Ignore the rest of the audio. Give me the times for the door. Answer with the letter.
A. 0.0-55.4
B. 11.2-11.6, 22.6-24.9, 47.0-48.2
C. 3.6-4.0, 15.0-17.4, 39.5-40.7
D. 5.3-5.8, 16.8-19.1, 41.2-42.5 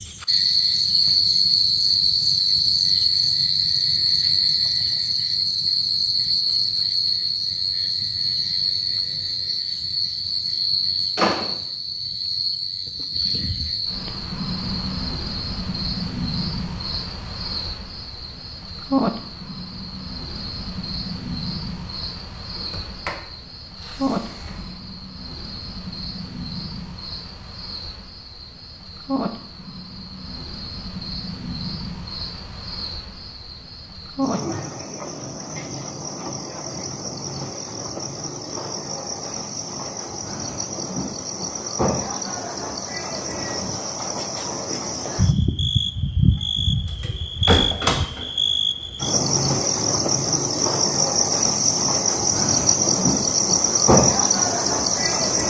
B.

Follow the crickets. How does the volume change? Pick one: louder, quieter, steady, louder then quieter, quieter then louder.
quieter then louder.